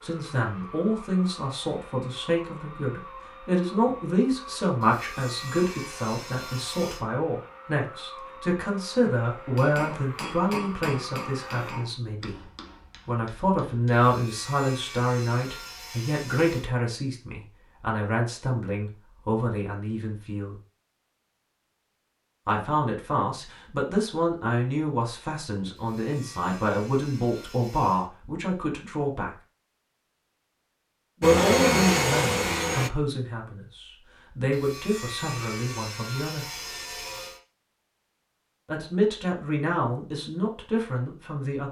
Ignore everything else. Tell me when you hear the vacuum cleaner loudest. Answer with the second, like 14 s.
32 s.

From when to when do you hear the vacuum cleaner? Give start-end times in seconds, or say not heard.
0.0-11.8, 31.2-32.9.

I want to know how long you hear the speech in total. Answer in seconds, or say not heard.
35 s.